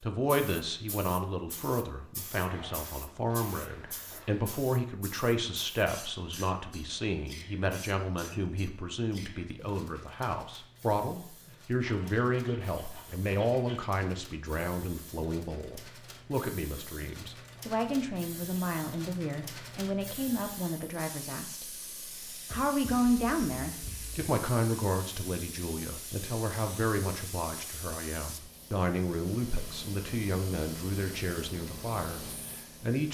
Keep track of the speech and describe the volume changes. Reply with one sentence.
The loudness of the speech stays about the same.